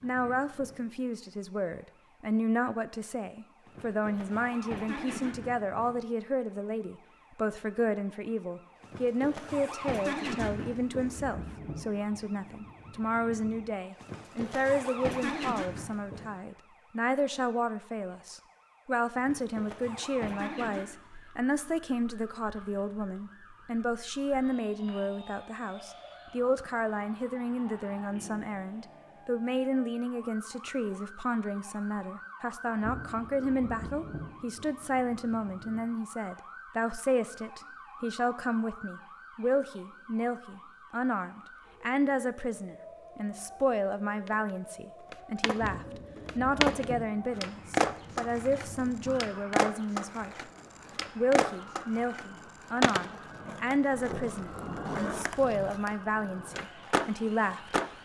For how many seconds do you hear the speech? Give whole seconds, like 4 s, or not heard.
57 s.